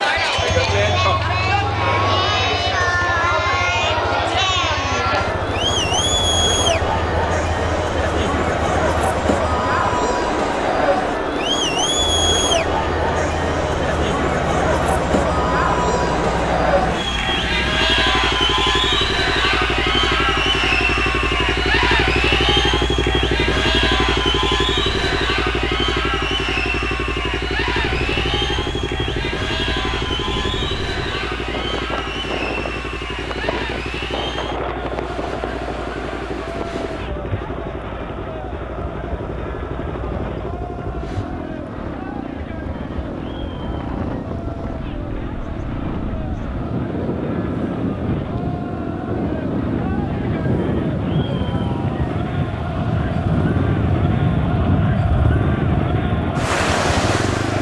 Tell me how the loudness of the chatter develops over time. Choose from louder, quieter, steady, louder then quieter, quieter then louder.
quieter.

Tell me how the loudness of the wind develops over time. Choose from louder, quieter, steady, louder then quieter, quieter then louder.
louder.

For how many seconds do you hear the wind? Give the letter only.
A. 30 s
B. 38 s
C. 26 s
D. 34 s
A.